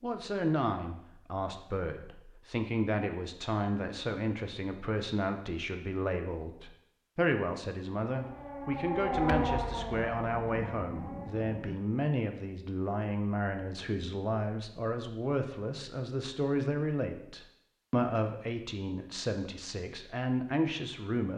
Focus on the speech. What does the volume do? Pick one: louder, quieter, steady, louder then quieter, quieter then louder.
steady.